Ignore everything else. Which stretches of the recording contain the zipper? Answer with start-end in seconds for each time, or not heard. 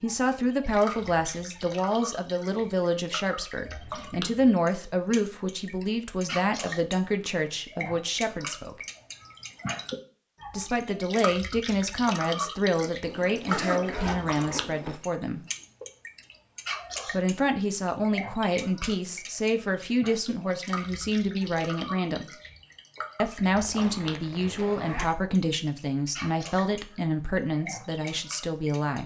3.7-4.3, 13.0-14.9, 23.6-25.1.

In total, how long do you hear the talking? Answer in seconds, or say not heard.
25 s.